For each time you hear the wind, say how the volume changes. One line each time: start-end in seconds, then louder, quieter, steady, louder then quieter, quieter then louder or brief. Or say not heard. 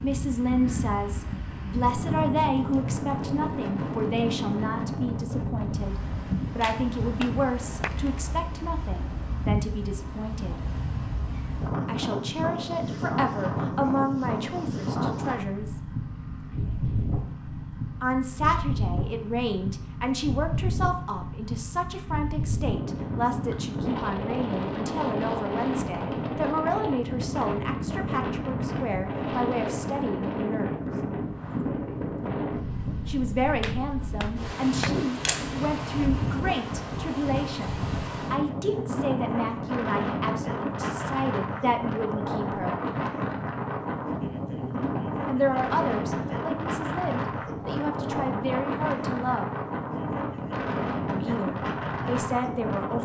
0.0-52.9 steady.